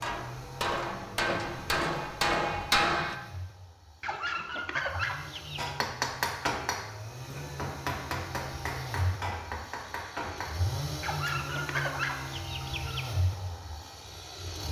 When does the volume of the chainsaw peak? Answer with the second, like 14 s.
11 s.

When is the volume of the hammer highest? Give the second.
3 s.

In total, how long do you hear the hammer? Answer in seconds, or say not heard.
8 s.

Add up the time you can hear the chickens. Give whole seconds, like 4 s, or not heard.
4 s.